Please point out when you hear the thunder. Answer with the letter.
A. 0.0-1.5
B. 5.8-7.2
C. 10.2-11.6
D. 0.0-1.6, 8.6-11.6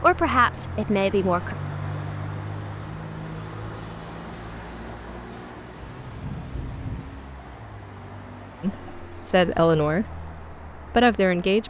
B.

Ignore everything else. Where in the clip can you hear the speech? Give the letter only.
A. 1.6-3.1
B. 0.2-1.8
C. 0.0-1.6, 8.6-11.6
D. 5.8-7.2
C.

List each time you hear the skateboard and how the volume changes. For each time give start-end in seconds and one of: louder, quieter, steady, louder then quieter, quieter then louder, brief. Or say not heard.
not heard.